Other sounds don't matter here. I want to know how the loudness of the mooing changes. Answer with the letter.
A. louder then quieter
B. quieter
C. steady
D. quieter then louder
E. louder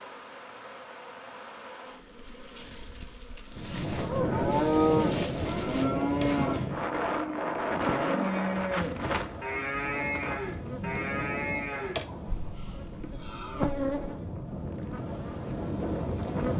B.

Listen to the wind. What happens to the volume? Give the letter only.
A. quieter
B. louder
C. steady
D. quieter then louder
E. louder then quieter
D.